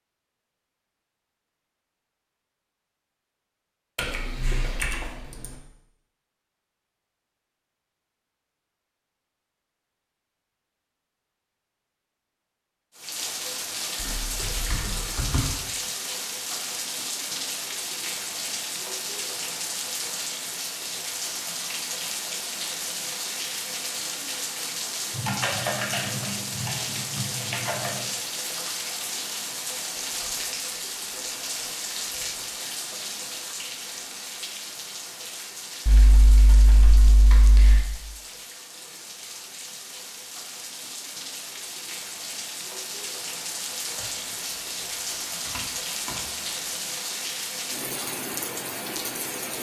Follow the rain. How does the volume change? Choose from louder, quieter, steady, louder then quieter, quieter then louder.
quieter then louder.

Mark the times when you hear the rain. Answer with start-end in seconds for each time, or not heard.
12.9-49.5.